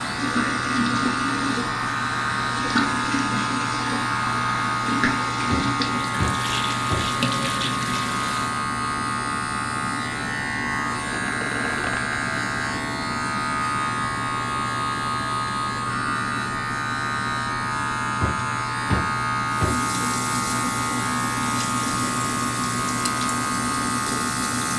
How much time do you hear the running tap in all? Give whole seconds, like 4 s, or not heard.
14 s.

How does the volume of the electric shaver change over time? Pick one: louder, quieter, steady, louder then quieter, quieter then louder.
steady.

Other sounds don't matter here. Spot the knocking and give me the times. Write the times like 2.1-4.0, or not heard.
5.5-7.2, 18.2-19.9.